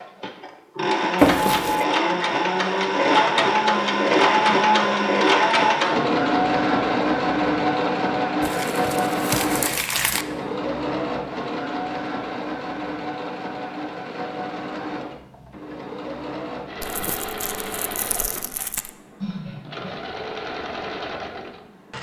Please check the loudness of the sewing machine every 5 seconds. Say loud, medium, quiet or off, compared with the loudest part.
loud, loud, medium, quiet, quiet.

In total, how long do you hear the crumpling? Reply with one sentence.
You can hear the crumpling for 5 seconds altogether.